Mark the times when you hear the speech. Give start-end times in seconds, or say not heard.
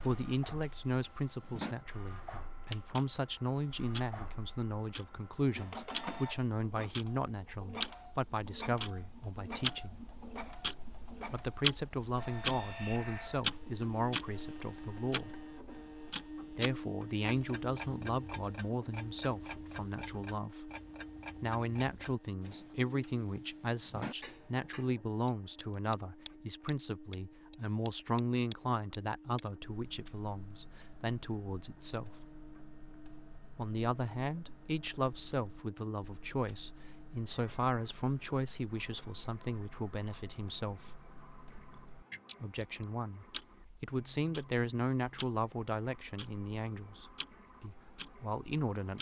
0.0-10.0, 11.3-15.3, 16.5-20.7, 21.4-32.3, 33.5-41.0, 42.4-48.9.